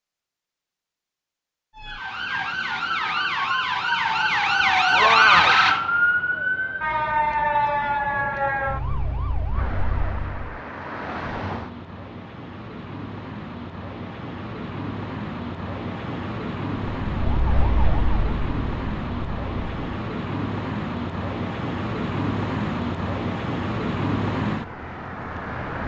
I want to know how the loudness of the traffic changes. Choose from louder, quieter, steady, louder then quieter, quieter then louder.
louder.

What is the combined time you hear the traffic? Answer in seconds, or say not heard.
16 s.